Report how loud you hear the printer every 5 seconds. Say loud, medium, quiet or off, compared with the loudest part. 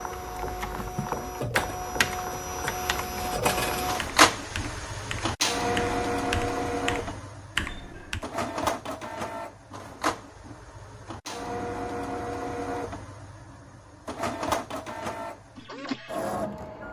loud, loud, medium, medium.